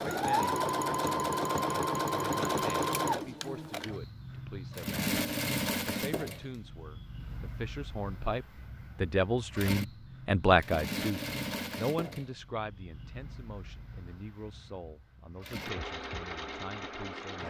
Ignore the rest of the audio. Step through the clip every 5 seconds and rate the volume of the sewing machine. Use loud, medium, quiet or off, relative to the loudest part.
loud, medium, medium, medium.